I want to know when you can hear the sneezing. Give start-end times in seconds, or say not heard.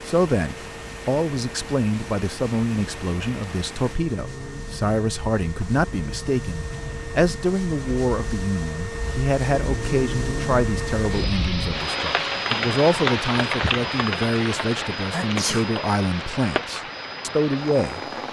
15.1-15.7.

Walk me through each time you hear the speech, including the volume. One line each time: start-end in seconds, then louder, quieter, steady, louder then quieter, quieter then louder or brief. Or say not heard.
0.0-18.0 steady.